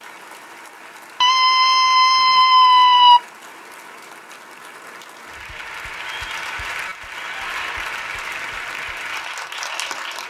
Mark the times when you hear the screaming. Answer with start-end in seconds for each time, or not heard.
1.2-3.2, 7.1-7.8.